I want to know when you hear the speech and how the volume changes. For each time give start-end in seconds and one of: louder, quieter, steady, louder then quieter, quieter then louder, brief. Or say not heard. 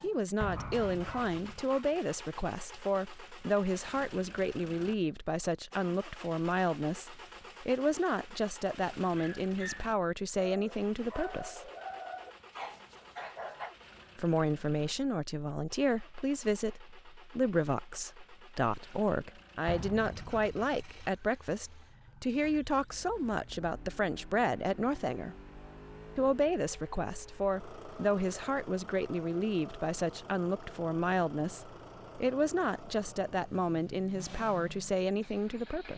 0.0-11.7 steady
14.2-25.4 steady
26.1-35.9 steady.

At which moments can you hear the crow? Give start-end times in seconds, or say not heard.
not heard.